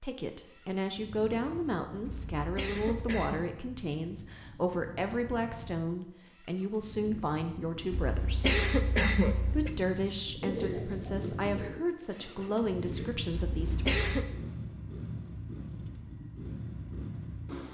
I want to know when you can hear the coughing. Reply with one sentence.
You can hear the coughing from 2.0 to 3.5 s, from 7.9 to 9.7 s and from 13.3 to 14.3 s.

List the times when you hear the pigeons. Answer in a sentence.
You can hear the pigeons from 10.4 to 13.2 s.